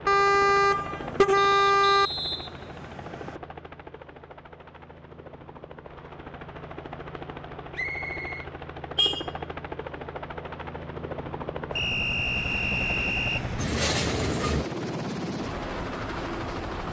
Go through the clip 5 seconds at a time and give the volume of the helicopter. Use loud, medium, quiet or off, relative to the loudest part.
medium, medium, loud, loud.